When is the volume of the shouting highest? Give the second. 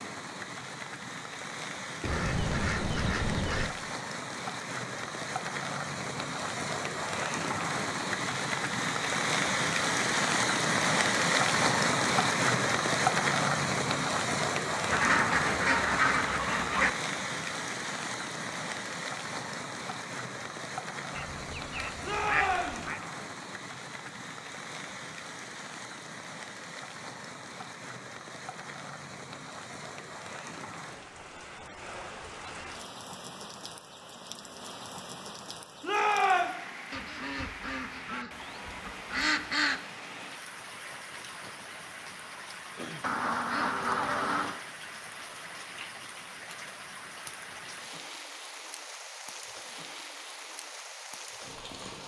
36 s.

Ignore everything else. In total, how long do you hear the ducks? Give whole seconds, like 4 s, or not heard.
10 s.